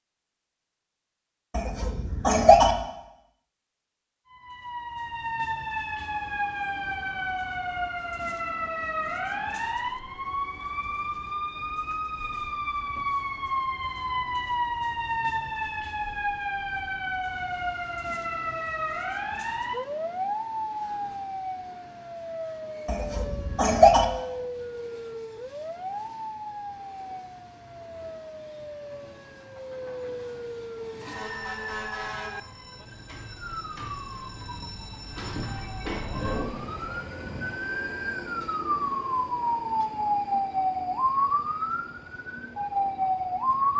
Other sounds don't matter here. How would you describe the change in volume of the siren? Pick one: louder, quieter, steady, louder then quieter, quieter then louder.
quieter then louder.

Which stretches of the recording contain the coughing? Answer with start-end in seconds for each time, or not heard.
1.6-2.8, 22.9-24.1.